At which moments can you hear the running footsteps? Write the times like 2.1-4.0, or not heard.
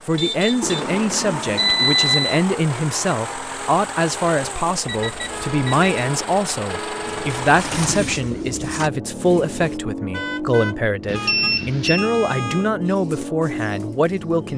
not heard.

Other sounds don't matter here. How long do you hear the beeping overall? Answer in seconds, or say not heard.
4 s.